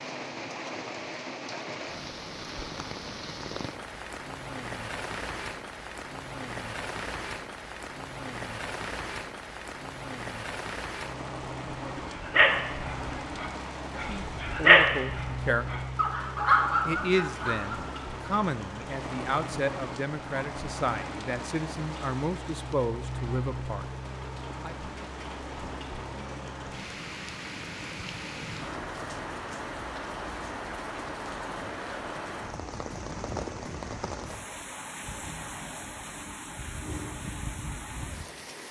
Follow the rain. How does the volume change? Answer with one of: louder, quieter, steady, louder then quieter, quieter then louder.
steady.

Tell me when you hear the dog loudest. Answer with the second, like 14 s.
15 s.